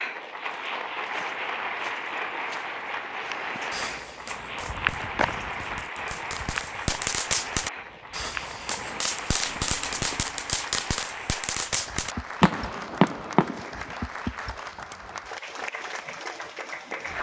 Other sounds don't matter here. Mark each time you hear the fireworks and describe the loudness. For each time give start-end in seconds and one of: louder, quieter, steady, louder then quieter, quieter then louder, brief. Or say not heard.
3.5-13.9 louder.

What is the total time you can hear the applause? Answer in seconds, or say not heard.
17 s.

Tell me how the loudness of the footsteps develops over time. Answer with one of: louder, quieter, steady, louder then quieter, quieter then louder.
louder then quieter.